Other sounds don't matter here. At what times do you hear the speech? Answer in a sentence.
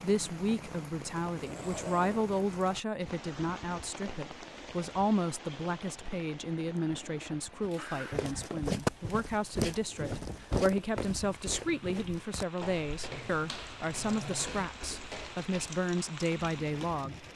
The speech can be heard from 0.0 to 17.1 s.